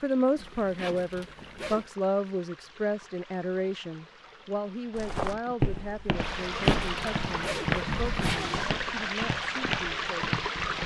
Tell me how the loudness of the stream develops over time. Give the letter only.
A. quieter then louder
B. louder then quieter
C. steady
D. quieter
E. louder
E.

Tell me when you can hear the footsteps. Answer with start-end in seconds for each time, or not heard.
5.0-10.4.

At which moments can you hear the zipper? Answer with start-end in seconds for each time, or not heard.
0.3-1.9, 6.3-8.7.